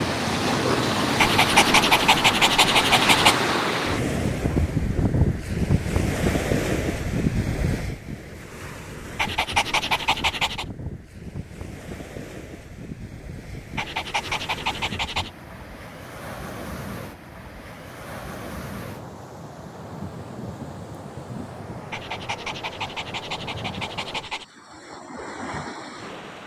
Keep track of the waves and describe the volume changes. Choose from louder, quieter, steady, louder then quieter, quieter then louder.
quieter.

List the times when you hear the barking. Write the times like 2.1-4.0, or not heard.
1.1-3.4, 9.2-10.7, 13.8-15.3, 21.9-24.4.